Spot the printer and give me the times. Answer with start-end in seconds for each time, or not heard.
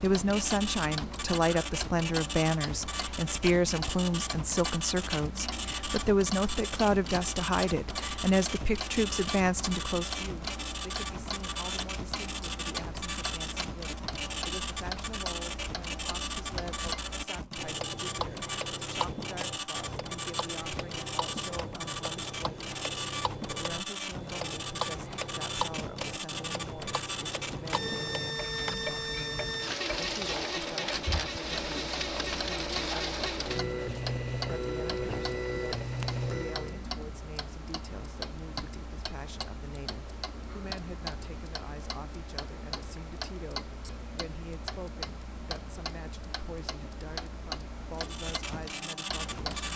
0.0-36.9, 48.0-49.7.